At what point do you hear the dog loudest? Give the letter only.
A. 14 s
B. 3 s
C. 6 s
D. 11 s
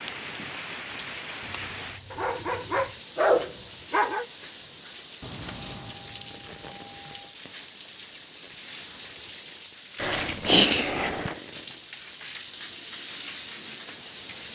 B.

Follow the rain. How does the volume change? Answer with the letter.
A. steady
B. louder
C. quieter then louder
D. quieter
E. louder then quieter
A.